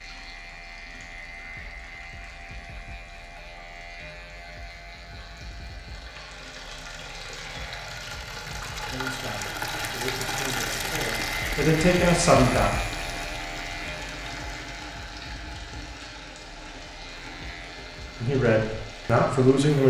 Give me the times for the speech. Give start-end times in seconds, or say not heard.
8.9-12.7, 18.2-19.8.